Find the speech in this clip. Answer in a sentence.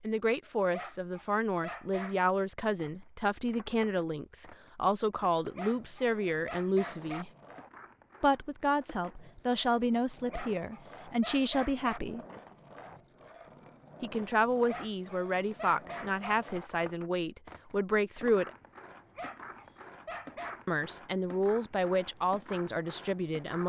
The speech can be heard from 0.0 to 7.3 s, from 8.2 to 12.2 s, from 14.0 to 18.5 s and from 20.6 to 23.6 s.